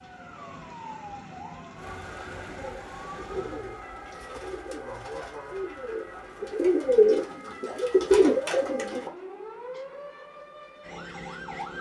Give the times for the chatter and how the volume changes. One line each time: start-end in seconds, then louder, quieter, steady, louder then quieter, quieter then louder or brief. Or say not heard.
not heard.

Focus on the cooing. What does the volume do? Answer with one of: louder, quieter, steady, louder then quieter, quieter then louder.
louder.